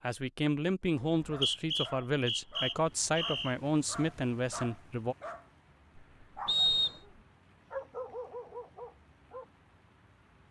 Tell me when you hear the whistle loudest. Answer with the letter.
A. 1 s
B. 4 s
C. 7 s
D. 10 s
C.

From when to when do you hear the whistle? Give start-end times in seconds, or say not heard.
1.0-3.5, 6.5-7.0.